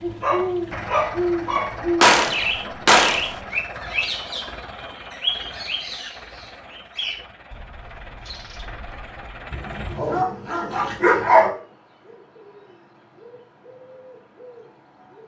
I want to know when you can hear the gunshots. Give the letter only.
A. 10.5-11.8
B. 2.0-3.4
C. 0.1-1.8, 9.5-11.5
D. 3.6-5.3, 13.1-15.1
B.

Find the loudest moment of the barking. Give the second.
11 s.